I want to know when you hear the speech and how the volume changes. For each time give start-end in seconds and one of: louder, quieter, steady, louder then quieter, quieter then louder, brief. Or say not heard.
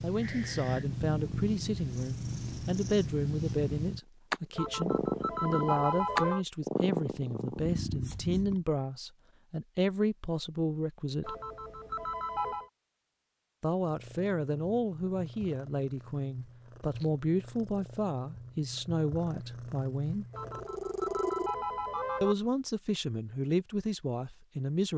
0.0-11.3 steady
13.6-20.2 steady
22.2-24.9 brief.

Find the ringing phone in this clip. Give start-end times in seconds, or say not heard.
4.5-6.5, 11.2-12.7, 20.3-22.4.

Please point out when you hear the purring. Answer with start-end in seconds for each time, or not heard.
0.0-8.7, 13.8-21.6.